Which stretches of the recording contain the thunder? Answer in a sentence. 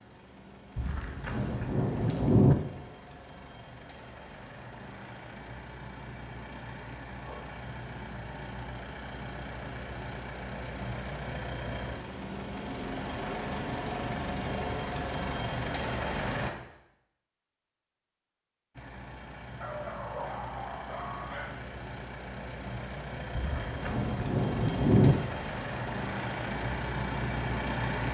You can hear the thunder from 0.8 to 2.5 s and from 23.4 to 25.1 s.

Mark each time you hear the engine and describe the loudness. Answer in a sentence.
You can hear the engine from 0.0 to 16.5 s, getting louder; and from 18.7 to 28.0 s, getting louder.